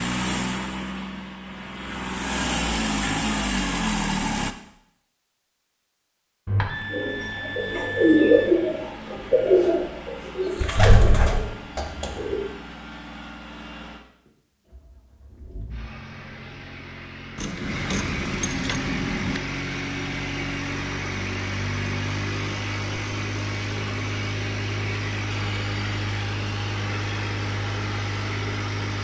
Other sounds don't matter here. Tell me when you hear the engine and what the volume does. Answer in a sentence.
You can hear the engine from 0.0 to 4.5 s, getting quieter then louder; and from 6.7 to 29.0 s, getting louder.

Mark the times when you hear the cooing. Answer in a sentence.
You can hear the cooing from 6.9 to 12.4 s.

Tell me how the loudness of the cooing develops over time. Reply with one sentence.
The volume of the cooing goes down.